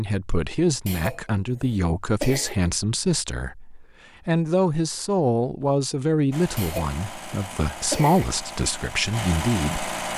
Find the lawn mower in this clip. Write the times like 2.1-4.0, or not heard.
6.3-10.1.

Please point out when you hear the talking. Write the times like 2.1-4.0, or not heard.
0.0-9.9.